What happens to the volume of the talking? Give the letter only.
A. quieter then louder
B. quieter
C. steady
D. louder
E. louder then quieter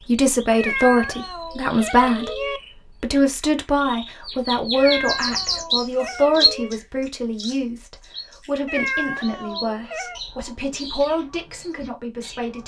B.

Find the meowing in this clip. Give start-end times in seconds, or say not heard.
0.6-2.6, 4.8-6.7, 8.7-10.2.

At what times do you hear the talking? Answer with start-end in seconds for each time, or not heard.
0.1-12.6.